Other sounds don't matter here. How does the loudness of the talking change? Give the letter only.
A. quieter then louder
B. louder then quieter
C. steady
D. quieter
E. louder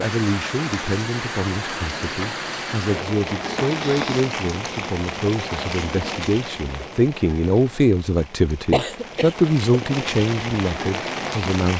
E.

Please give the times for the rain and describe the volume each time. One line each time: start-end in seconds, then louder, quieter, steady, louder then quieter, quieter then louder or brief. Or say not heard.
0.0-11.7 quieter then louder.